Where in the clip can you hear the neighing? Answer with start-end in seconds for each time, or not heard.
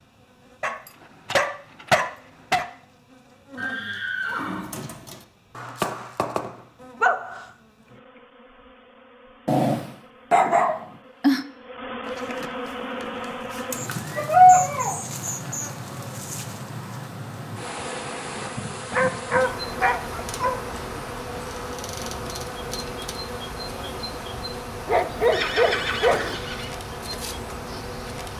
3.5-5.2, 12.1-14.3, 25.3-26.7.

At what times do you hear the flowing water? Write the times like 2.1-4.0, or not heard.
not heard.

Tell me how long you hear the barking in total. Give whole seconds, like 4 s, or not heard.
10 s.